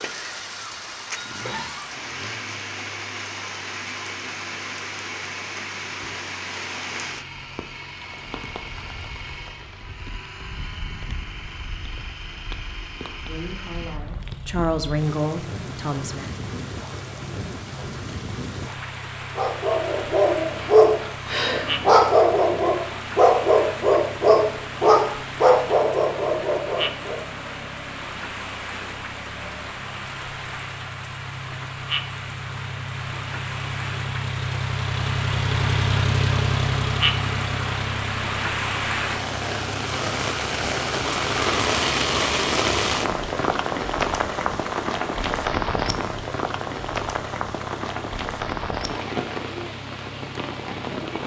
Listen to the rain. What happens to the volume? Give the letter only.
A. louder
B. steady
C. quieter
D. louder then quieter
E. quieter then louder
A.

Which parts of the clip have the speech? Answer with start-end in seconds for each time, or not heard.
13.2-16.3.